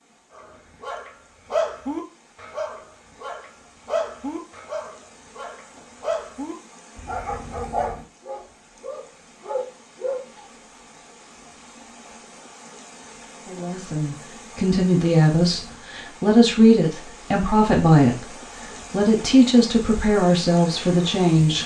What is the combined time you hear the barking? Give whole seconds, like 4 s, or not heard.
10 s.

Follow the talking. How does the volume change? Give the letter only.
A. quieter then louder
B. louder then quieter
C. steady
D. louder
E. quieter
C.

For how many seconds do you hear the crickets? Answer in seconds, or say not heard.
not heard.